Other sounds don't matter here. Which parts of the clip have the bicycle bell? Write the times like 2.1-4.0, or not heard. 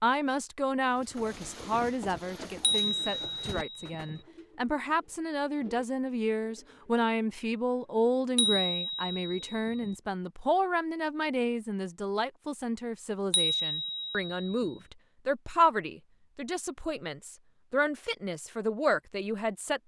2.6-4.2, 8.3-9.9, 13.3-14.7.